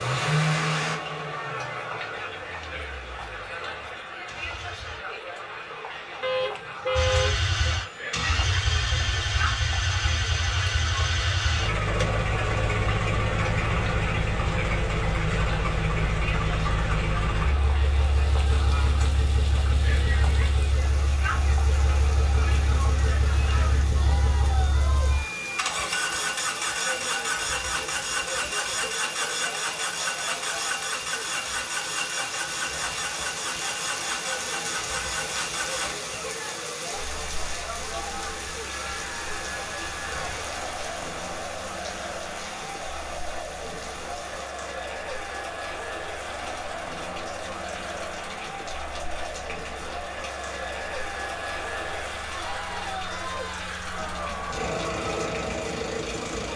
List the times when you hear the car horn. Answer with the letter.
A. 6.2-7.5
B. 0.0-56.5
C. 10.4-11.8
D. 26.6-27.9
A.